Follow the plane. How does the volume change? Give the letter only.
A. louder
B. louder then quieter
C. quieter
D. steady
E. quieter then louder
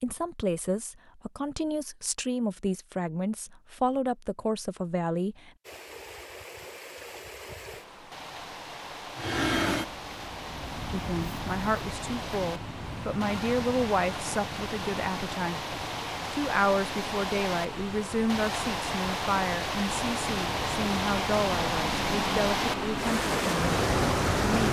E.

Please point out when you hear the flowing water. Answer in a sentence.
You can hear the flowing water from 5.6 to 24.6 s.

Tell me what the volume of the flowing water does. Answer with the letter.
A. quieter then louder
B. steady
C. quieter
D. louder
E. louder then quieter
D.